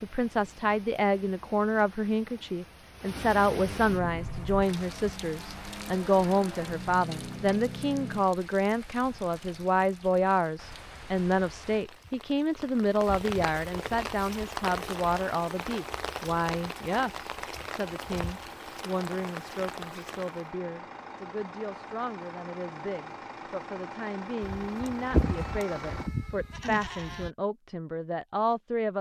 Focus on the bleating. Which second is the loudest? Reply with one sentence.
The volume of the bleating peaks at 25 seconds.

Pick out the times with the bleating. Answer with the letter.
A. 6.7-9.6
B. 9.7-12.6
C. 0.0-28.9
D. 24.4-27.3
D.